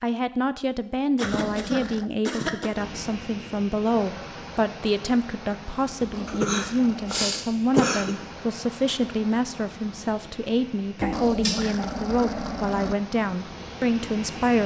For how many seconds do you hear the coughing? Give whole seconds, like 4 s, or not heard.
4 s.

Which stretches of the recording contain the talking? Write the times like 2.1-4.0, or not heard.
0.0-14.6.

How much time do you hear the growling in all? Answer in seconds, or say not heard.
4 s.